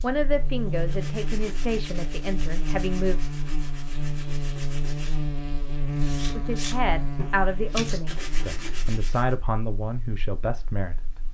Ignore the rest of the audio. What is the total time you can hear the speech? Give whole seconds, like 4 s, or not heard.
8 s.